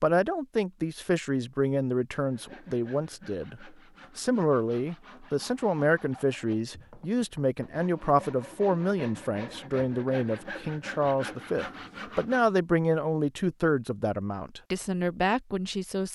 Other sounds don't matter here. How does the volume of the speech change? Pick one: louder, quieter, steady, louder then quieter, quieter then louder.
steady.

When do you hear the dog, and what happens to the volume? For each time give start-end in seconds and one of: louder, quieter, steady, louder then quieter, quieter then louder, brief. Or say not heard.
not heard.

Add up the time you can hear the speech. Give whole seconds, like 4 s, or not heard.
16 s.